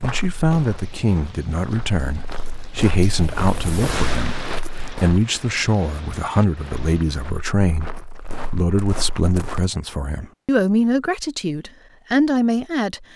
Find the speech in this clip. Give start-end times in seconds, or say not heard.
0.0-13.1.